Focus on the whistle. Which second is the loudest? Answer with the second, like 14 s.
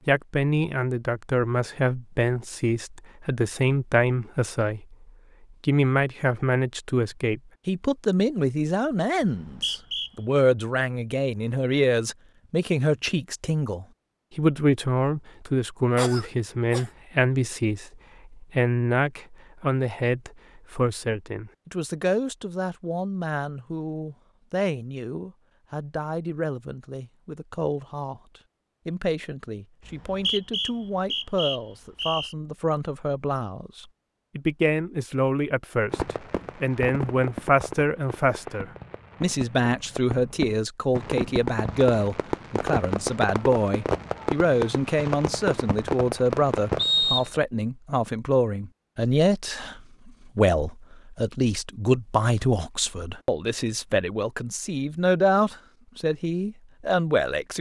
47 s.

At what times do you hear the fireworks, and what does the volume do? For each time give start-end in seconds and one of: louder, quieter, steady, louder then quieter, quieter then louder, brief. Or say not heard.
35.9-46.9 louder.